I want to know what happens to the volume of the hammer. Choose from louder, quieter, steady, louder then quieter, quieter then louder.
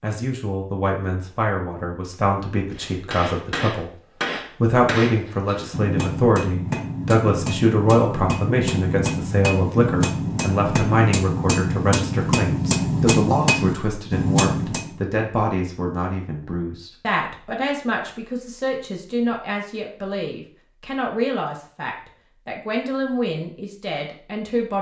louder.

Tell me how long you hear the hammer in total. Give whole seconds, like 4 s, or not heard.
12 s.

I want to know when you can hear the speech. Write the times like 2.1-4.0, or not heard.
0.0-4.0, 4.6-24.7.